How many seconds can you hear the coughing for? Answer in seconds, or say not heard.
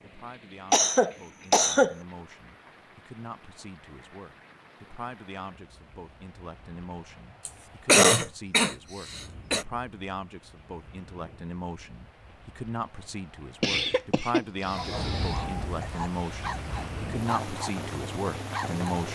5 s.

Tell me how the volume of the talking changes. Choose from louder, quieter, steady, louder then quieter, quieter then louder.
louder.